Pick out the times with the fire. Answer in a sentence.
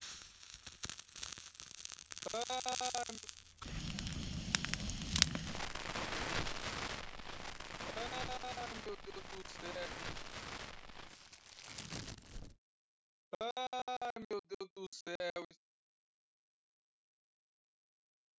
You can hear the fire from 0.0 to 12.6 s.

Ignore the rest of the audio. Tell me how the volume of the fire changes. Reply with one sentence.
The volume of the fire goes up, then down.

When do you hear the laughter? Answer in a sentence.
You can hear the laughter from 2.2 to 3.2 s, from 7.8 to 9.9 s and from 13.3 to 15.6 s.